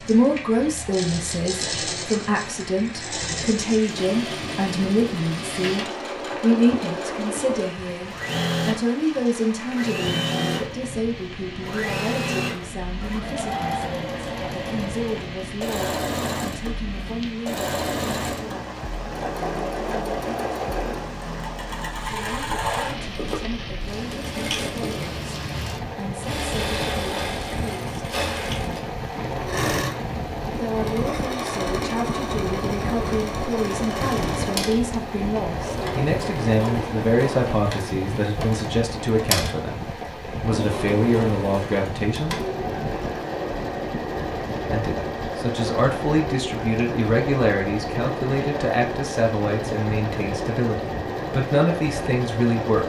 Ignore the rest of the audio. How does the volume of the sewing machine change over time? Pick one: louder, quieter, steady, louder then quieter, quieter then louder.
steady.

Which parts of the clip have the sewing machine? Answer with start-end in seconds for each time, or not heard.
0.0-52.8.